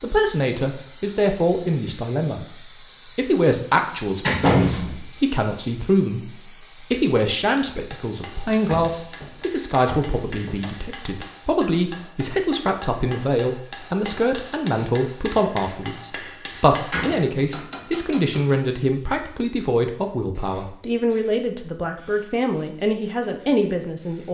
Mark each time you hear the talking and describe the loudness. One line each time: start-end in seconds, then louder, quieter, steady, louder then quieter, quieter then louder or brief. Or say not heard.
0.0-2.5 brief
3.1-24.2 steady.